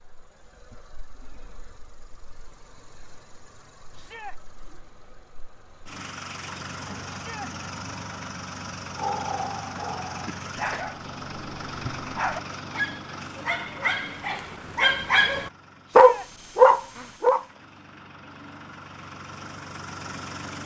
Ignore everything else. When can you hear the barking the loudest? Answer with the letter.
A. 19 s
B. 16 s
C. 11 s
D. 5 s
B.